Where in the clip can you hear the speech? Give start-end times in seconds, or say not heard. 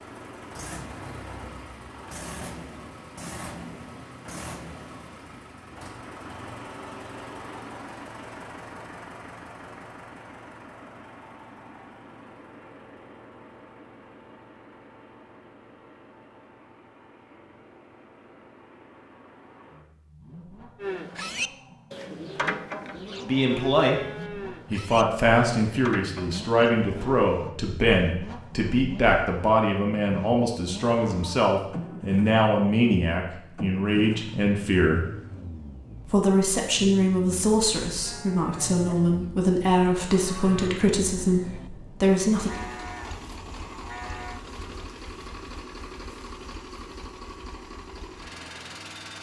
23.2-23.9, 24.7-35.0, 36.0-42.5.